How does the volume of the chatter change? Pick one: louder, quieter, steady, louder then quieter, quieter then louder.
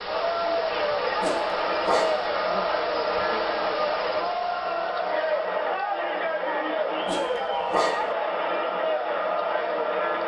steady.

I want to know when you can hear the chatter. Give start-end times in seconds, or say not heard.
0.0-10.2.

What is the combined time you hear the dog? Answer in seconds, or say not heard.
2 s.